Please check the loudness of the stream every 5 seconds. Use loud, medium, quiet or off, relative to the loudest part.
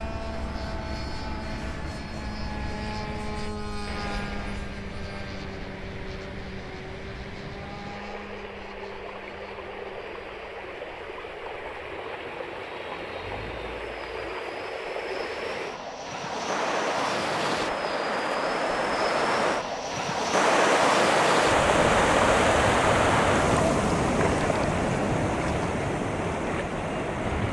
quiet, quiet, quiet, medium, loud, medium.